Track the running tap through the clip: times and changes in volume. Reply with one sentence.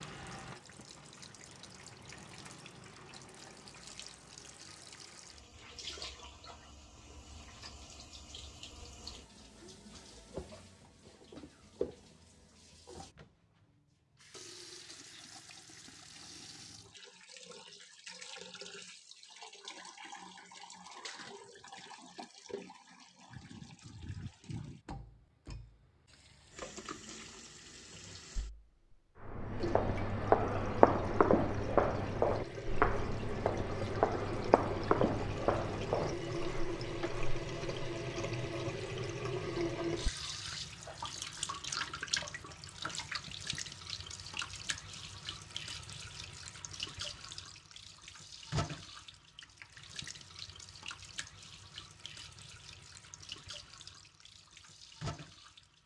The running tap can be heard from 0.0 to 55.8 s, getting louder then quieter.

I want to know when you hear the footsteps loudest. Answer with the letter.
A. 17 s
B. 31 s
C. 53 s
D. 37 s
B.